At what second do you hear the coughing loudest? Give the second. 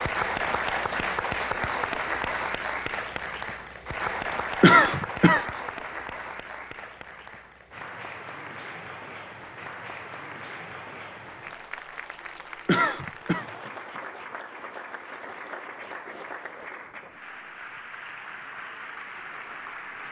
5 s.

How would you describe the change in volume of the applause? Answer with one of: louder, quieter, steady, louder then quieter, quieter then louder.
quieter.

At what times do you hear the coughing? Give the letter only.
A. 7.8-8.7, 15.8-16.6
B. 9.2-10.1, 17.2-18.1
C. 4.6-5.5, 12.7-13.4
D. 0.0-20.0
C.